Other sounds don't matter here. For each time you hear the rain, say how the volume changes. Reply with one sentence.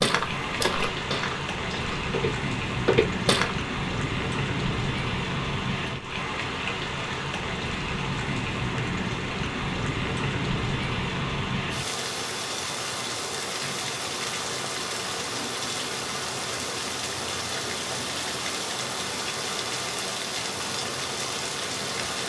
The rain can be heard from 0.0 to 22.2 s, at a steady volume.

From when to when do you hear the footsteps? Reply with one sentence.
You can hear the footsteps from 0.0 to 3.5 s.